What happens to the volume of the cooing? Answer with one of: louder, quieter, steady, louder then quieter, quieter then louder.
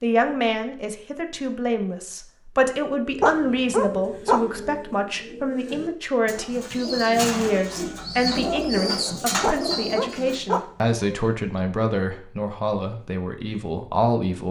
louder.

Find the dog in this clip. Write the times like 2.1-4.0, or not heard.
3.2-4.4, 9.4-11.2.